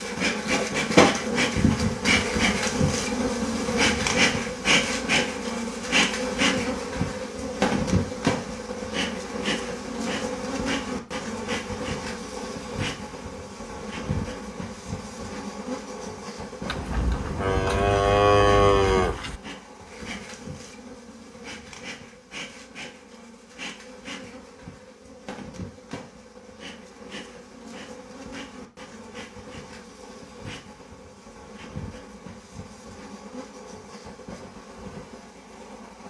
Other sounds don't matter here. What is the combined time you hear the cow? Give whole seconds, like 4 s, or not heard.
3 s.